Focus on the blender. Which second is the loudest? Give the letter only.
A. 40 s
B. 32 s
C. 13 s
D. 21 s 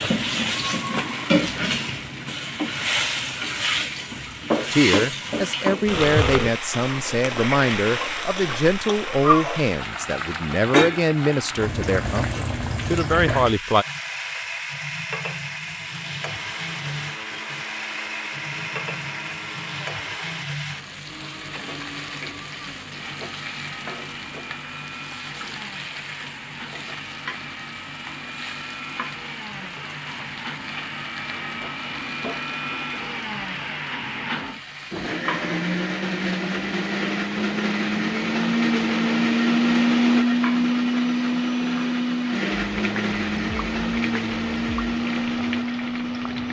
A.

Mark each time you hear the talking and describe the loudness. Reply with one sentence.
The talking can be heard from 4.7 to 13.8 s, at a steady volume.